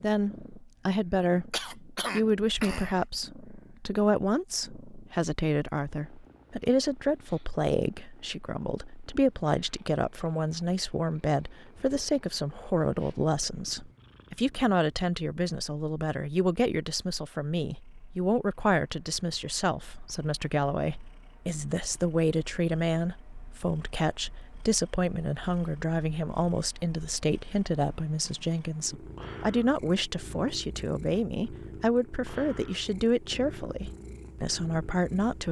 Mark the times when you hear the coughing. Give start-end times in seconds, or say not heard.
1.5-3.0.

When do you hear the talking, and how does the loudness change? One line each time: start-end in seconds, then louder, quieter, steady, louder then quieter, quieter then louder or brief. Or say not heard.
0.0-35.4 steady.